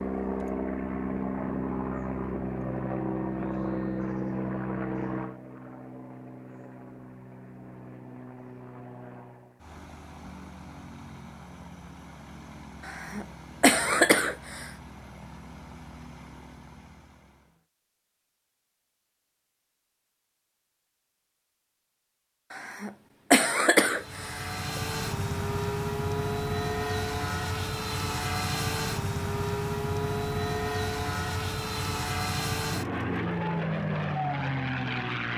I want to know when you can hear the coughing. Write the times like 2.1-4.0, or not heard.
12.8-14.7, 22.5-24.8.